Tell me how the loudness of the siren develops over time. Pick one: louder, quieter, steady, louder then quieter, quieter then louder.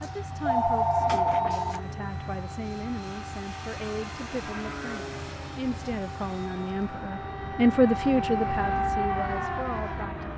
louder.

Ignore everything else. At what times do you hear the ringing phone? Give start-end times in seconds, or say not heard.
0.0-1.8.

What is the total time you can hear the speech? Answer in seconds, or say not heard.
10 s.